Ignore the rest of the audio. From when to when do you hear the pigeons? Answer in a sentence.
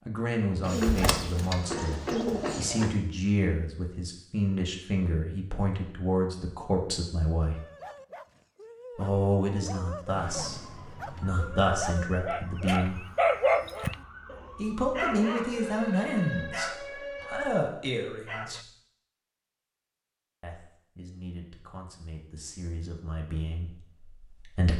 You can hear the pigeons from 0.6 to 3.0 s.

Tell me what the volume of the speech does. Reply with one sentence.
The volume of the speech goes down.